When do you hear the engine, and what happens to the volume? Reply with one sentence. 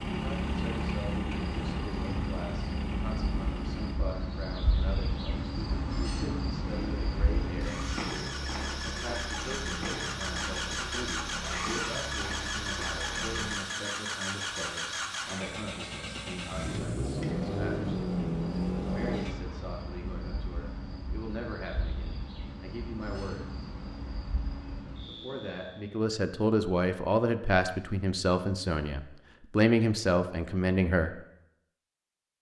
The engine can be heard from 0.0 to 4.0 s, getting quieter; and from 6.6 to 19.4 s, getting louder.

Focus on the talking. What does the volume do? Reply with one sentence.
The loudness of the talking goes up.